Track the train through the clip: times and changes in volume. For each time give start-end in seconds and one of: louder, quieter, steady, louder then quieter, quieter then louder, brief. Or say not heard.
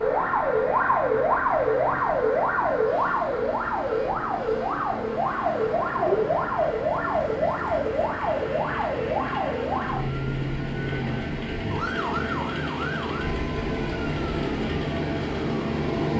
0.0-16.1 louder.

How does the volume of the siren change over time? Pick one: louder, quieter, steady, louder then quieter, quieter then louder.
quieter.